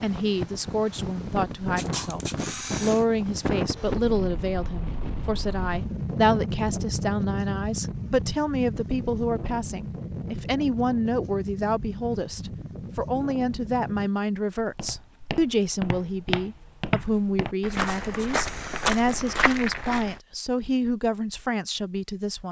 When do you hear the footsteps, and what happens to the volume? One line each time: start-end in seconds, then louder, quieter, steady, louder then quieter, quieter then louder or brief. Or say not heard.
14.6-20.2 louder.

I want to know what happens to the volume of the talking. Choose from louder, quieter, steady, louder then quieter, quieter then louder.
steady.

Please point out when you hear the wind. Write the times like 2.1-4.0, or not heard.
0.0-14.1.